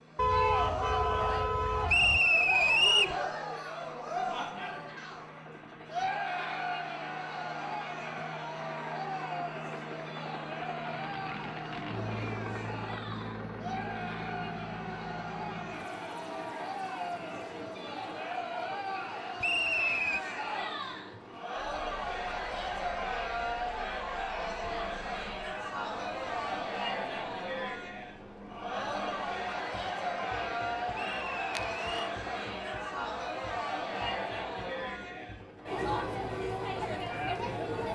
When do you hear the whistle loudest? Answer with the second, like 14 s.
3 s.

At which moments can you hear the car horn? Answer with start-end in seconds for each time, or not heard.
0.1-2.2, 31.5-32.1.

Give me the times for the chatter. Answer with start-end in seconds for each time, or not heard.
0.1-37.8.